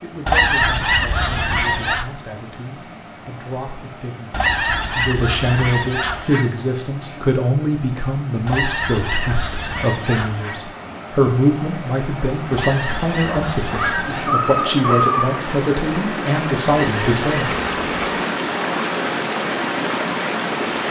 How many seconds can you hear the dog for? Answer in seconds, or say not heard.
2 s.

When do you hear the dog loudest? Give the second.
15 s.